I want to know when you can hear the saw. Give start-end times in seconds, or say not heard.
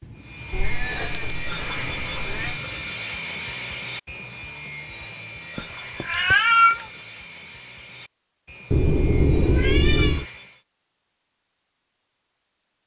0.1-10.6.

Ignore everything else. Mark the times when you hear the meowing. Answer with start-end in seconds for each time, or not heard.
0.5-2.6, 5.5-6.8, 8.7-10.2.